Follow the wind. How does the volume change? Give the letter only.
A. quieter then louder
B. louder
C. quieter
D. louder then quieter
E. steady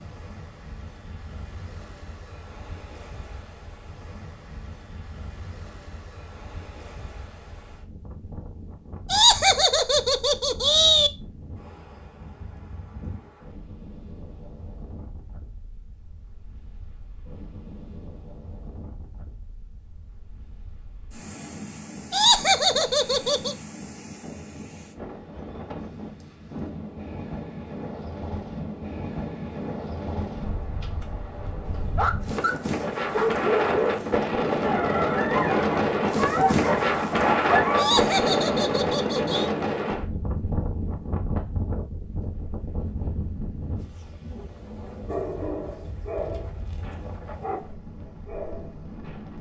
D.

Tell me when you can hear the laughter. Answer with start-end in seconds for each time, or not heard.
9.1-11.1, 22.1-23.6, 37.8-39.5.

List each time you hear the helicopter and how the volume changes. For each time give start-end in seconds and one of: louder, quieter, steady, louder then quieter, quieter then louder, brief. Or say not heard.
not heard.